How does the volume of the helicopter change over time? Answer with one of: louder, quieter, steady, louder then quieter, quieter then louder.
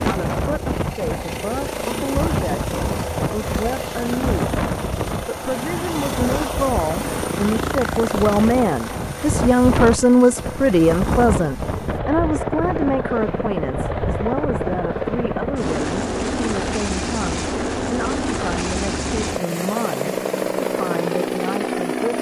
steady.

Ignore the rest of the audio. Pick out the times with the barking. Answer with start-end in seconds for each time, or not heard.
not heard.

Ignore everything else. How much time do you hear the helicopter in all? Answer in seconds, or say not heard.
22 s.